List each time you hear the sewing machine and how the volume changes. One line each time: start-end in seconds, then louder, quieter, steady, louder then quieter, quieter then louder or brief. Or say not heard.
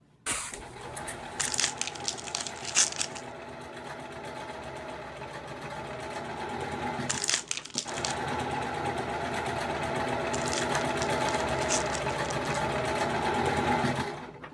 0.0-14.4 louder.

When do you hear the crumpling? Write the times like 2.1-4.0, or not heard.
1.4-3.2, 7.0-8.2, 10.3-12.6.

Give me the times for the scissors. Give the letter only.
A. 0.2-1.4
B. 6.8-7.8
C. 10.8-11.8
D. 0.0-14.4
A.